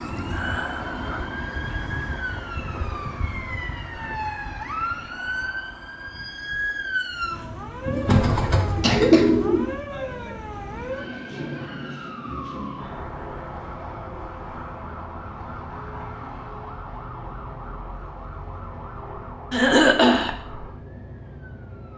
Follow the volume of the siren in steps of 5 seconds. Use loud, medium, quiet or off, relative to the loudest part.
loud, loud, loud, medium, medium.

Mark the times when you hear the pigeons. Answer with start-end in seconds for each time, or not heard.
7.8-9.7.